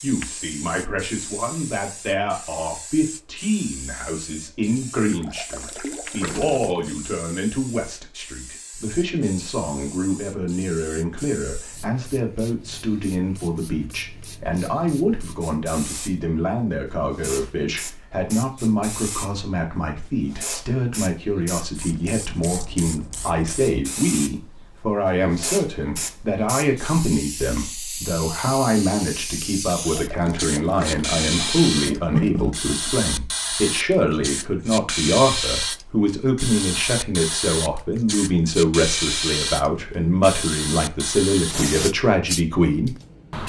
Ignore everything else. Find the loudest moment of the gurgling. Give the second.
32 s.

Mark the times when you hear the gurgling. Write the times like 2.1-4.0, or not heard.
5.1-7.0, 29.9-32.5.